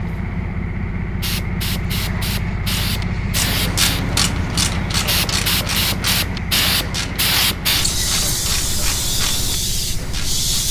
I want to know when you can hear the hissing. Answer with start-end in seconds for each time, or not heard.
0.0-10.6.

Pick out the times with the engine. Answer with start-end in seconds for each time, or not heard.
0.0-10.6.